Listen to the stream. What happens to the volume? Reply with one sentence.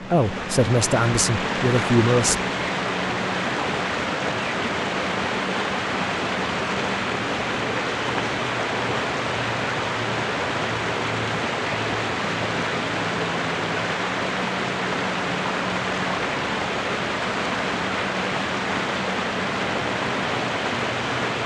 The volume of the stream stays about the same.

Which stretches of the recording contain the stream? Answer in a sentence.
The stream can be heard from 0.0 to 21.4 s.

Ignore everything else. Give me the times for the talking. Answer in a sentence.
The talking can be heard from 0.0 to 2.4 s.